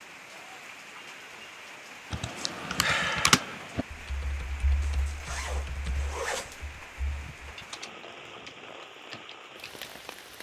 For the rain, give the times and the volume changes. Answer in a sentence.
The rain can be heard from 0.0 to 10.3 s, at a steady volume.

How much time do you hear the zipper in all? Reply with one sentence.
You can hear the zipper for 2 seconds altogether.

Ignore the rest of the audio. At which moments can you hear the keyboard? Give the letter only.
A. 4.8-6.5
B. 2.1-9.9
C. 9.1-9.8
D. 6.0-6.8
B.